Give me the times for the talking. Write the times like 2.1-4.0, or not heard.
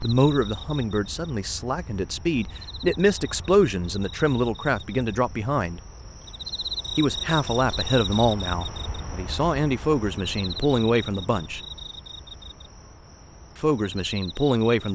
0.0-5.8, 7.0-11.6, 13.6-14.9.